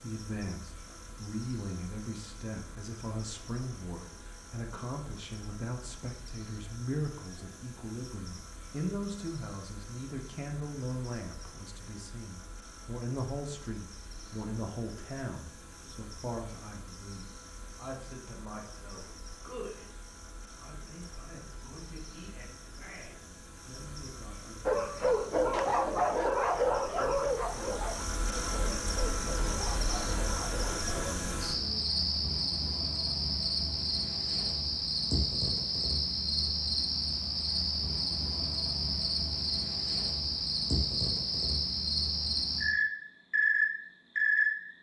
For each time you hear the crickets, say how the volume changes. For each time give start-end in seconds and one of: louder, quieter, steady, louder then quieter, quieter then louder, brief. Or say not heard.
0.0-44.7 louder.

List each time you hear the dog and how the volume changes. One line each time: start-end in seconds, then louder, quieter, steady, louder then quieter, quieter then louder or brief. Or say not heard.
24.6-31.1 quieter.